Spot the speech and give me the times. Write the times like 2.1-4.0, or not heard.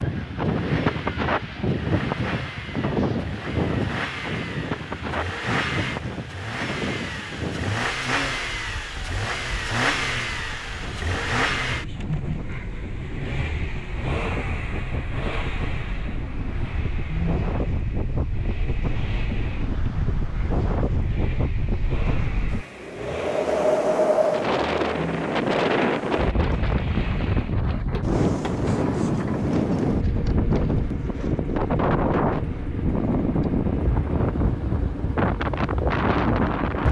not heard.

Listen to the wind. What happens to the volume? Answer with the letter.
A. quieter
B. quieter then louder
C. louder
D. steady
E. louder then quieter
B.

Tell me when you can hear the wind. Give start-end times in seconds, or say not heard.
0.0-36.8.